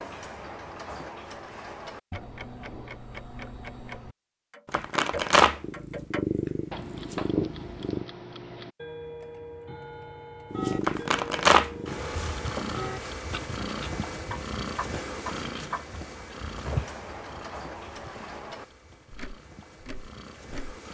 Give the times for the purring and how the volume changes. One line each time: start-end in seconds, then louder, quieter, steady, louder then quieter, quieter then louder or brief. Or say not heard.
5.6-8.1 brief
10.5-20.8 quieter.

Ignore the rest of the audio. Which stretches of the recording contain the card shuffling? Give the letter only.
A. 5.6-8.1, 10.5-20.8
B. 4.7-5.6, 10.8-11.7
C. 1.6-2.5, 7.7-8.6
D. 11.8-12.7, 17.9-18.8
B.